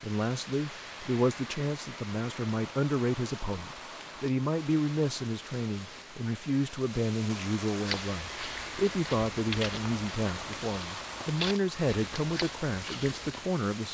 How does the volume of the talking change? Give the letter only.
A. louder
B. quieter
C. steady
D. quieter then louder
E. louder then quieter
C.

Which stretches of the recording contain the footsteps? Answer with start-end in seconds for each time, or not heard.
7.8-13.4.